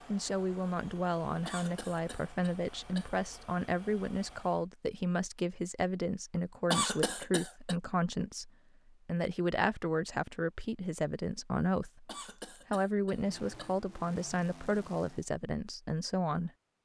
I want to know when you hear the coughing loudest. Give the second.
7 s.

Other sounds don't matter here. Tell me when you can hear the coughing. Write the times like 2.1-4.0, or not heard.
1.4-3.1, 6.7-7.8, 12.1-13.8.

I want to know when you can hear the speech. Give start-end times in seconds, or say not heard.
0.1-12.1, 12.7-16.5.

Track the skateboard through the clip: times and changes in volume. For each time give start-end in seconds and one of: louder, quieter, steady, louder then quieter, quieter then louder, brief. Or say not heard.
not heard.